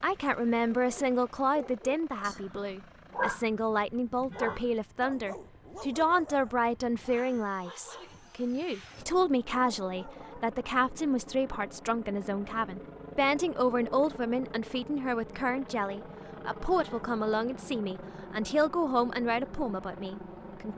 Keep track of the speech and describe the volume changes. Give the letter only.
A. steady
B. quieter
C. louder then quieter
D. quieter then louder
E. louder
A.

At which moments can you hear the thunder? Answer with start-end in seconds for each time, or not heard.
not heard.